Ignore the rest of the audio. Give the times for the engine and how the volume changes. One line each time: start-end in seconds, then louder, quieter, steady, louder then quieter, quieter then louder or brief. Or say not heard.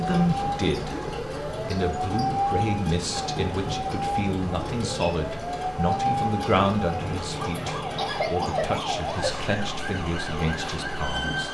0.0-11.4 steady.